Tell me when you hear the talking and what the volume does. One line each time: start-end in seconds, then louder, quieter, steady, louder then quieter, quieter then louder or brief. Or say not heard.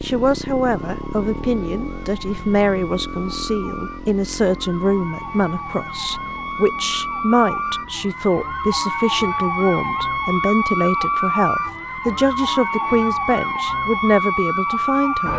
0.0-15.3 steady.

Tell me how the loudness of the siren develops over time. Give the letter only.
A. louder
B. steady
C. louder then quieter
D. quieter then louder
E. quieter
A.